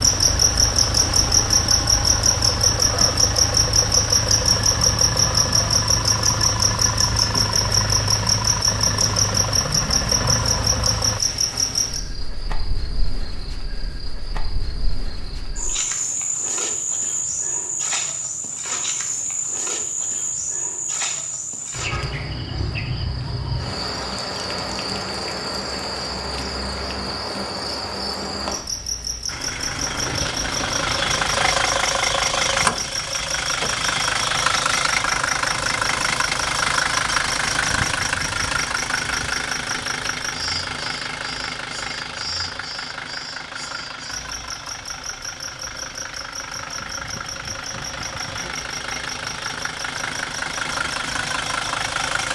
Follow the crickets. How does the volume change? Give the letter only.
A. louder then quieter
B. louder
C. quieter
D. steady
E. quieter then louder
C.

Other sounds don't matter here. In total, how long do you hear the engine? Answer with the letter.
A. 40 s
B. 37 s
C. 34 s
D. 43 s
C.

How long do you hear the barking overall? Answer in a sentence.
You can't hear the barking here.